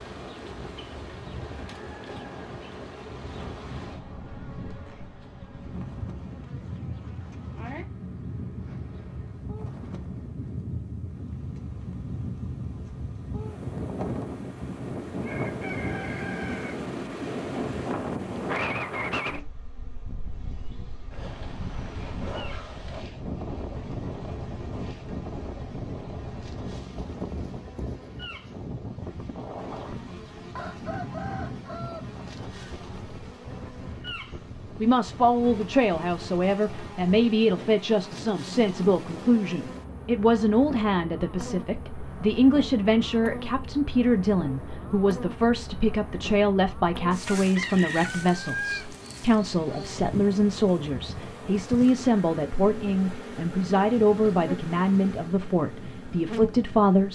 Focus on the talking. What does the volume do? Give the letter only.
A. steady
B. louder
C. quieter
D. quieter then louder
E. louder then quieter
A.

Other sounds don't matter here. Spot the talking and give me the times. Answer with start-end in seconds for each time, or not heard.
34.3-57.1.